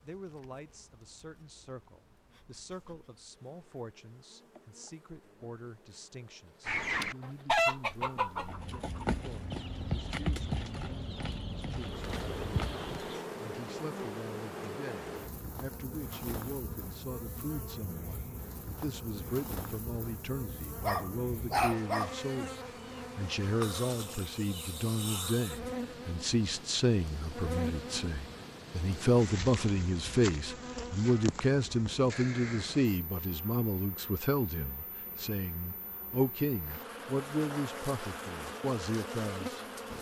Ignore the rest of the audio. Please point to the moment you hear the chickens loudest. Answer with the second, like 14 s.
8 s.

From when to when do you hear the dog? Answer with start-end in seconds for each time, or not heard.
20.8-22.1.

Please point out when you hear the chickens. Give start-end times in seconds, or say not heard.
6.7-13.2.